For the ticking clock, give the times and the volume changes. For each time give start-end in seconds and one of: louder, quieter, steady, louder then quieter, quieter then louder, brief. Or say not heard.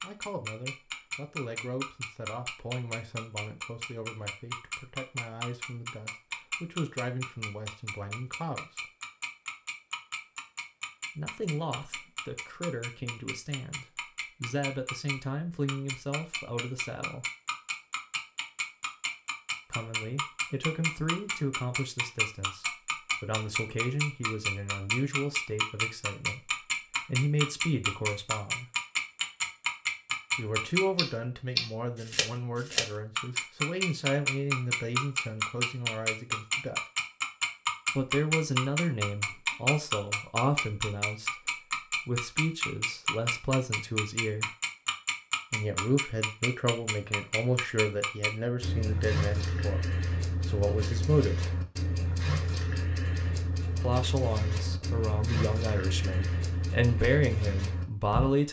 0.0-58.4 louder then quieter.